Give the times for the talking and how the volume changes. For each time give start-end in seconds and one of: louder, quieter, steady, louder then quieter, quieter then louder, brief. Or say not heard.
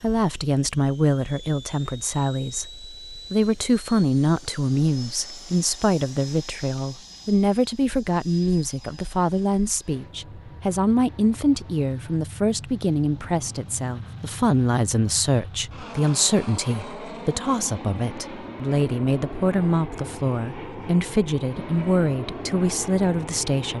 0.0-23.7 steady.